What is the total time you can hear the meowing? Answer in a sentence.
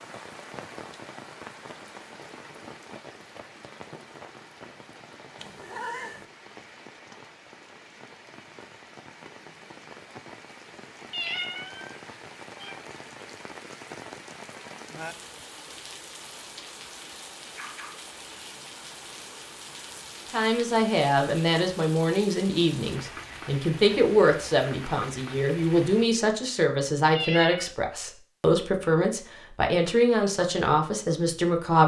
The meowing can be heard for 3 seconds in total.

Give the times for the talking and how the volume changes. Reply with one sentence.
You can hear the talking from 20.3 to 31.8 s, at a steady volume.